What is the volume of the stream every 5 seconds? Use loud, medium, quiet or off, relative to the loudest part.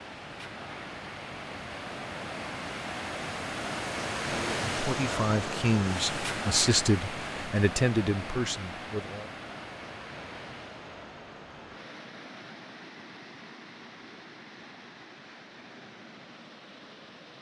loud, loud, medium, quiet.